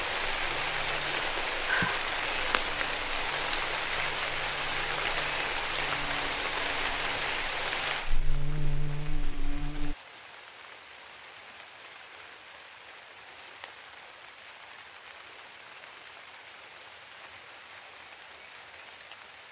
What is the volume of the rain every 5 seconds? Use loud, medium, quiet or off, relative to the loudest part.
loud, loud, quiet, quiet.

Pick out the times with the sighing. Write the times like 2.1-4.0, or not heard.
1.6-2.1.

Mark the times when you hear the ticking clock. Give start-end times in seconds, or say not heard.
not heard.